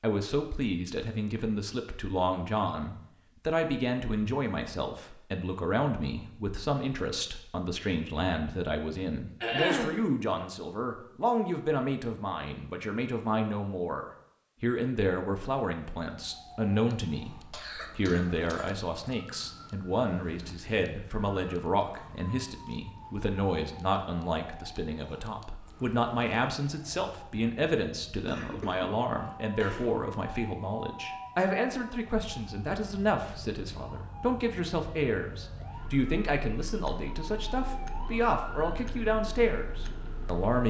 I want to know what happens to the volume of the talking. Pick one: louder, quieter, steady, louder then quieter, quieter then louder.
steady.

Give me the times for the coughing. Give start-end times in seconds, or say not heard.
9.4-9.9, 17.3-18.8, 28.2-30.0.